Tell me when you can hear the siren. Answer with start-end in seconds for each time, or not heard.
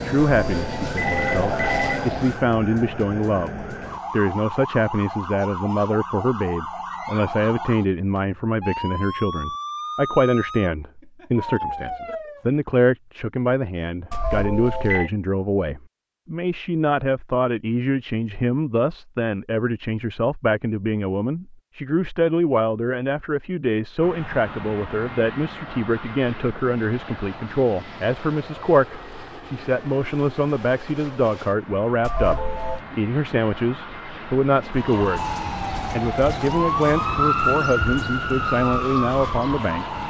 0.0-12.4, 34.7-40.0.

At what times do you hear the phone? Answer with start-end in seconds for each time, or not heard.
0.4-2.1, 14.1-15.1, 32.0-32.9.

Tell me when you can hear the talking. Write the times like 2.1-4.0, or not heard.
0.0-35.2, 35.9-40.0.